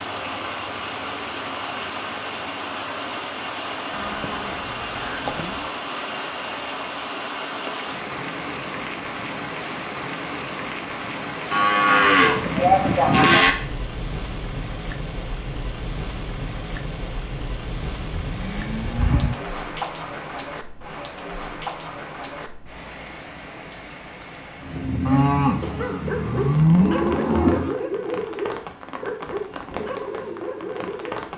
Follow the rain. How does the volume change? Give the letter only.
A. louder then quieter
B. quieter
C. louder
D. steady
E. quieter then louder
B.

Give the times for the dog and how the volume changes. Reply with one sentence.
The dog can be heard from 24.6 to 31.3 s, getting quieter.